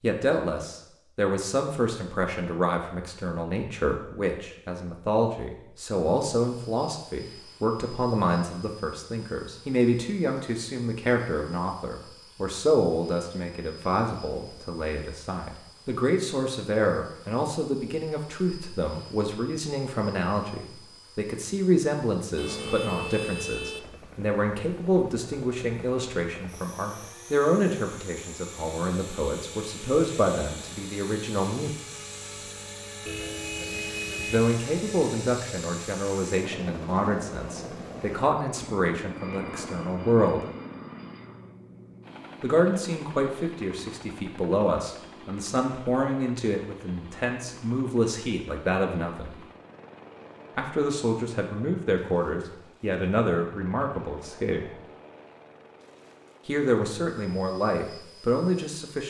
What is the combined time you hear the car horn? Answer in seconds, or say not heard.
3 s.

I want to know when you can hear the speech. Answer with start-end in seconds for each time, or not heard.
0.0-31.8, 34.2-40.4, 42.4-49.4, 50.5-54.7, 56.5-59.0.